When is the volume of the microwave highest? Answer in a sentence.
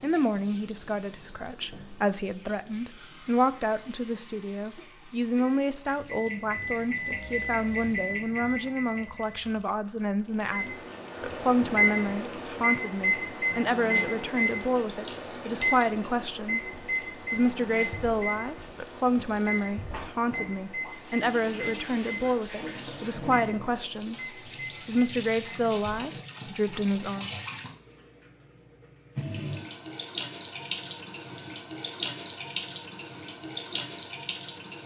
The loudest moment of the microwave is at 12 seconds.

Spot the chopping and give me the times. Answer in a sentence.
The chopping can't be heard in this clip.